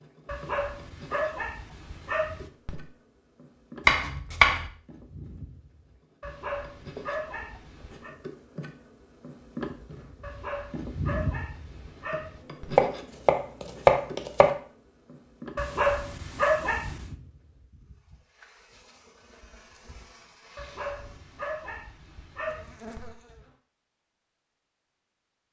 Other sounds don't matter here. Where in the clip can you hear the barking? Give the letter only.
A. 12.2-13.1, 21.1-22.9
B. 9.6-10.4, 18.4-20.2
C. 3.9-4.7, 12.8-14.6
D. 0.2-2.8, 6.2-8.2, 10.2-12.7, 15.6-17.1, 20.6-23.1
D.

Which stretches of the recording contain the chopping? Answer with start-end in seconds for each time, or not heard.
3.9-4.7, 12.8-14.6.